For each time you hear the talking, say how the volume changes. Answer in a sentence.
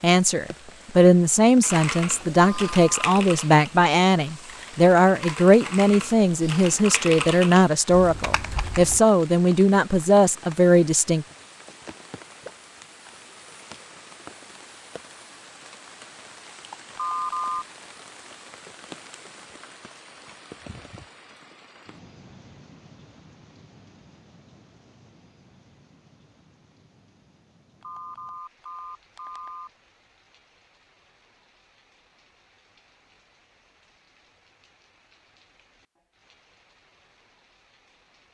You can hear the talking from 0.0 to 11.2 s, at a steady volume.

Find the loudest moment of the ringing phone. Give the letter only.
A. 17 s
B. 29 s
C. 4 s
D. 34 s
A.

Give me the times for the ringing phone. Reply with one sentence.
You can hear the ringing phone from 2.5 to 3.1 s, from 16.9 to 17.6 s and from 27.8 to 29.7 s.